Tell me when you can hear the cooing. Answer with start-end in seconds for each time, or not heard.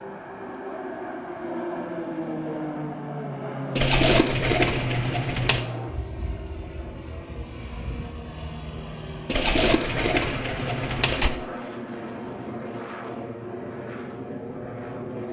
3.8-5.7, 9.2-11.3.